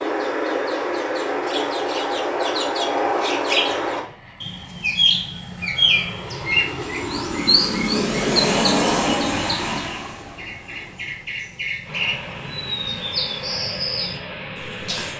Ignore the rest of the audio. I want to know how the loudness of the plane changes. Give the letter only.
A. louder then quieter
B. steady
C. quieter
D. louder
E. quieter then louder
A.